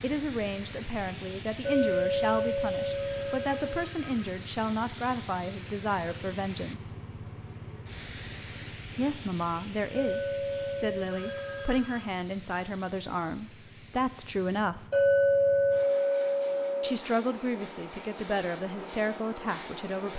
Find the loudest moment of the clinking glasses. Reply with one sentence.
The volume of the clinking glasses peaks at 15 seconds.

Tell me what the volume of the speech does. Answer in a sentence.
The loudness of the speech stays about the same.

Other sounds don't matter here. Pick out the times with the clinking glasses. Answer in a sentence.
You can hear the clinking glasses from 1.6 to 3.8 s, from 9.9 to 11.7 s and from 14.9 to 16.9 s.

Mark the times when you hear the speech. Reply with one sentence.
You can hear the speech from 0.0 to 7.0 s, from 8.9 to 14.8 s and from 16.8 to 20.1 s.